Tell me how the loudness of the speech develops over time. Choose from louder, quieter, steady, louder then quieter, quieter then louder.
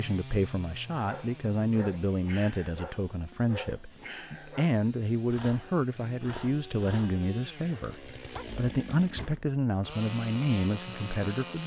steady.